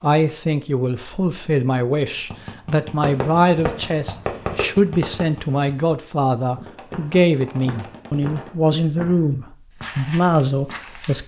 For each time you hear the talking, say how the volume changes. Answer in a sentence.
You can hear the talking from 0.0 to 11.2 s, at a steady volume.